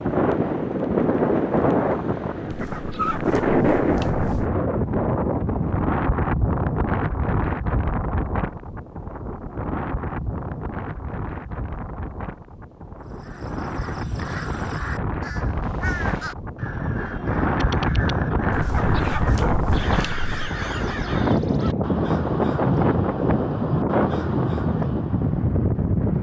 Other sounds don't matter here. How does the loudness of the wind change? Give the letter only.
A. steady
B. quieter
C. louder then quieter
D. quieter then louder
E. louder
D.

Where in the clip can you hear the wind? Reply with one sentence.
You can hear the wind from 0.0 to 26.1 s.